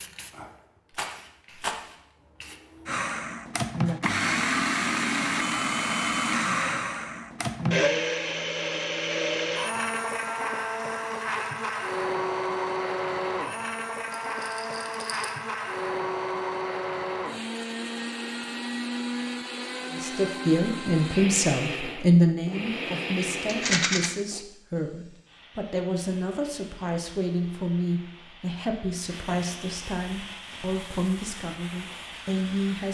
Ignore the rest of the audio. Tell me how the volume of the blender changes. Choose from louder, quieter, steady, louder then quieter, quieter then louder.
quieter.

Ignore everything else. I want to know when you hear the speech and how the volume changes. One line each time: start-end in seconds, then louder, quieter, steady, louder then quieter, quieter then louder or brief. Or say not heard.
19.9-32.8 quieter.